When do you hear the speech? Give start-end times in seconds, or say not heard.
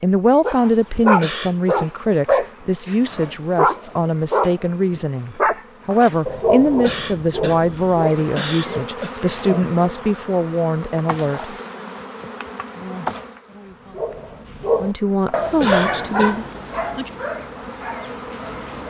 0.0-11.6, 14.8-16.4.